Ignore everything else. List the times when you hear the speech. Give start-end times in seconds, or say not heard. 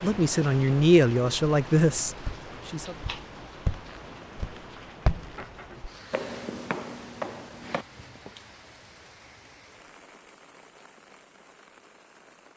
0.0-3.0.